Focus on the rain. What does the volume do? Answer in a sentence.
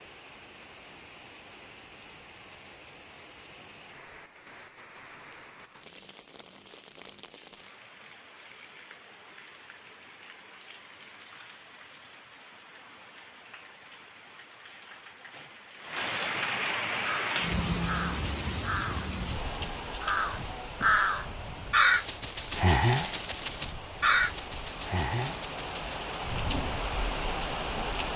The volume of the rain goes up.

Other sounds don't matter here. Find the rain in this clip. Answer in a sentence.
You can hear the rain from 0.0 to 28.1 s.